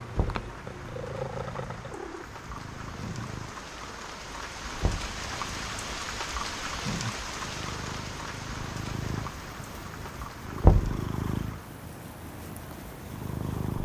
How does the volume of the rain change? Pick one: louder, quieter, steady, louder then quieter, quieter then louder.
louder then quieter.